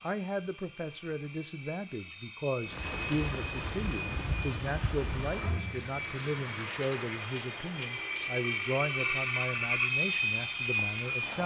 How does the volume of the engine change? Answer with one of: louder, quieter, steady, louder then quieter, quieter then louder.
louder.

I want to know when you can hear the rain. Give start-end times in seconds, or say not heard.
2.6-11.4.